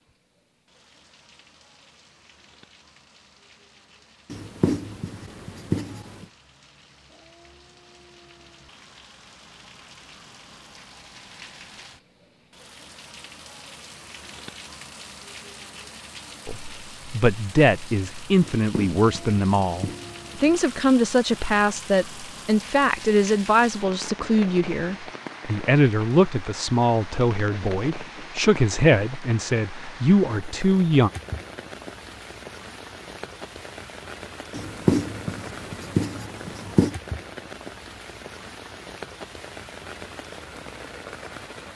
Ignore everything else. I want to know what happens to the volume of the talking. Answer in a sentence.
The volume of the talking stays about the same.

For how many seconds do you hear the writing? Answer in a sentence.
You can hear the writing for 6 seconds altogether.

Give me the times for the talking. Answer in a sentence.
You can hear the talking from 16.4 to 31.1 s.